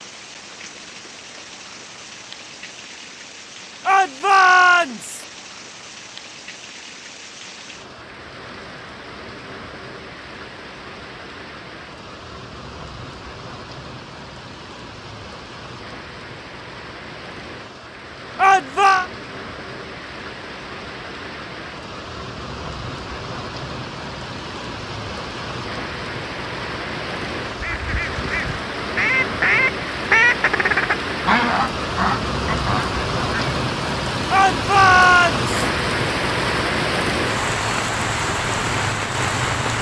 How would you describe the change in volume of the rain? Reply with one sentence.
The loudness of the rain goes up.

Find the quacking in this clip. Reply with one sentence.
The quacking can be heard from 27.4 to 33.6 s.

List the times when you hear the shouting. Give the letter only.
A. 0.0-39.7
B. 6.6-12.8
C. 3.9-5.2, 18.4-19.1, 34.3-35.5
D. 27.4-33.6
C.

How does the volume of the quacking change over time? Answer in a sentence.
The loudness of the quacking goes up, then down.